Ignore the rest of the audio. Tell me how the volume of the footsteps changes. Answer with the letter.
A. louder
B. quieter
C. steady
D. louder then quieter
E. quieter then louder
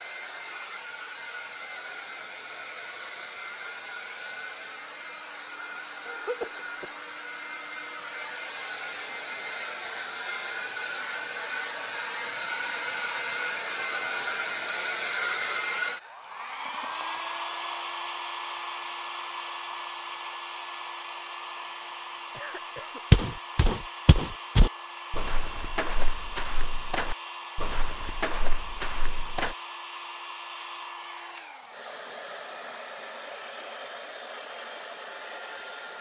B.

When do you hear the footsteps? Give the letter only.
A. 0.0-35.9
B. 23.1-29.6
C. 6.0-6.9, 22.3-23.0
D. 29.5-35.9
B.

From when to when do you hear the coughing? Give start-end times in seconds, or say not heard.
6.0-6.9, 22.3-23.0.